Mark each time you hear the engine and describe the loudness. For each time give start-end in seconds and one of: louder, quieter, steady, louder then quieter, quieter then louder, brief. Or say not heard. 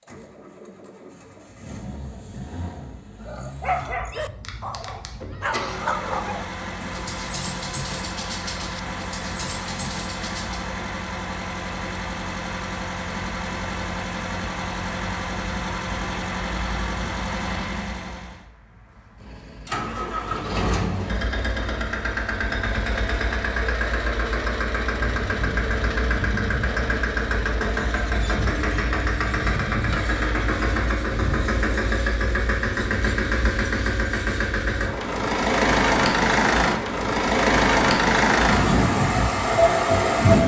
0.0-40.4 louder.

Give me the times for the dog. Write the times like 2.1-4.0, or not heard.
3.2-10.7.